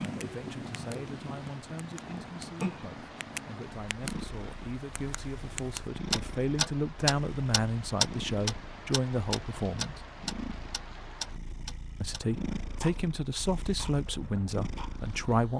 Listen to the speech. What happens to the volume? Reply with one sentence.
The loudness of the speech goes up.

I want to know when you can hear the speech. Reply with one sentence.
You can hear the speech from 0.0 to 10.1 s and from 12.0 to 15.5 s.